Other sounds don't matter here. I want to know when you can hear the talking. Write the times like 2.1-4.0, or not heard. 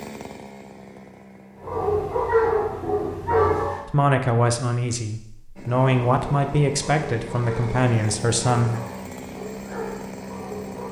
3.9-8.8.